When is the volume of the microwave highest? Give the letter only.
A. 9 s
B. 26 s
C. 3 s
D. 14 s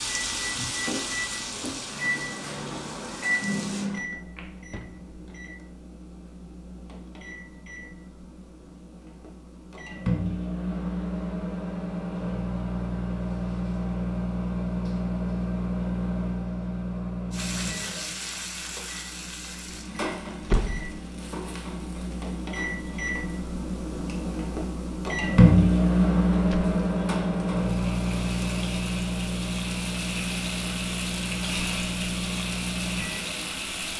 B.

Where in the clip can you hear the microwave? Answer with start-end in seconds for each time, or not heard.
0.1-33.9.